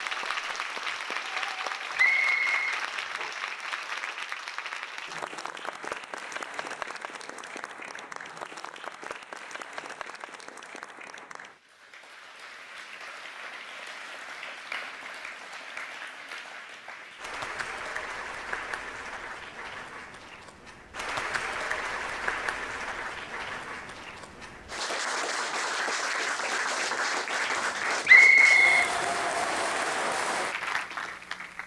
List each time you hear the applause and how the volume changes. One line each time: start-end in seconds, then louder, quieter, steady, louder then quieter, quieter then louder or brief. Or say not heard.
0.0-31.6 quieter then louder.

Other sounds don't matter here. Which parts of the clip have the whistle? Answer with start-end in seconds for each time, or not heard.
1.9-3.3, 28.1-28.9.